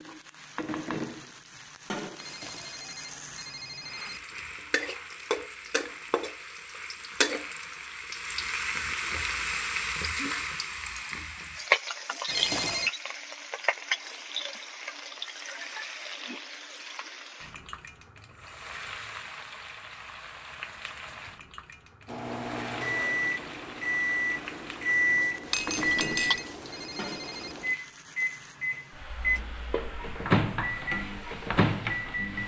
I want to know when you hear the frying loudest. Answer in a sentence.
The volume of the frying peaks at 12 seconds.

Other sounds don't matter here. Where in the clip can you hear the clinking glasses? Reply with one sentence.
The clinking glasses can be heard from 25.5 to 26.4 s.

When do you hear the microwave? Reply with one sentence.
The microwave can be heard from 22.1 to 32.4 s.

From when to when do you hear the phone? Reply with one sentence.
The phone can be heard from 2.1 to 4.2 s, from 12.2 to 12.9 s and from 25.6 to 27.6 s.